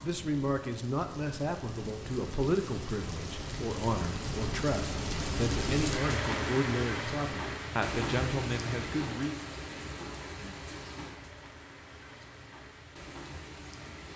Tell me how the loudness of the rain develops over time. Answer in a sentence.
The volume of the rain goes up, then down.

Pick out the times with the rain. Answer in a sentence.
The rain can be heard from 0.0 to 14.1 s.